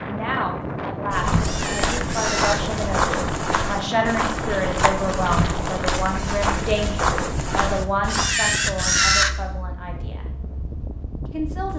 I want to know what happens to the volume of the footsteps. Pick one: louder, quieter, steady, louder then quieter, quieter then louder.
steady.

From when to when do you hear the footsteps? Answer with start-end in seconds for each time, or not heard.
1.1-8.2.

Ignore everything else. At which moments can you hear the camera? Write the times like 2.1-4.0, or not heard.
1.4-2.6, 8.1-9.3.